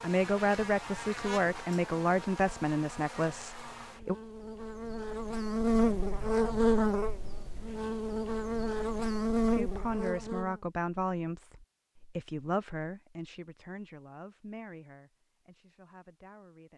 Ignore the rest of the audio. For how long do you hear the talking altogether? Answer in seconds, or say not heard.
11 s.